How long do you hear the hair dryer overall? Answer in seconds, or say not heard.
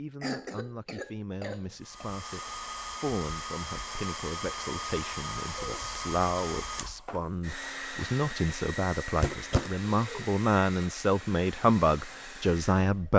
11 s.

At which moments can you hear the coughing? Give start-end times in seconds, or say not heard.
0.2-2.1, 5.5-6.0, 9.2-10.2.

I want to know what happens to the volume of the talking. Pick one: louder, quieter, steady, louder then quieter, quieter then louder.
louder.